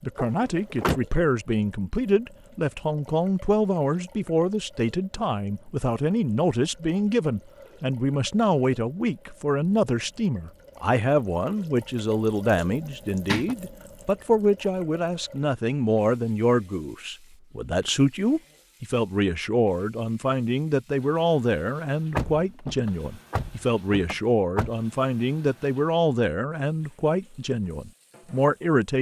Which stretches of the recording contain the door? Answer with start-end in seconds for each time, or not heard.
0.1-1.0, 12.8-13.6, 22.1-24.7.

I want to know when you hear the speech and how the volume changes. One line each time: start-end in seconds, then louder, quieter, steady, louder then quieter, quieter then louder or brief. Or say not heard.
0.0-28.9 steady.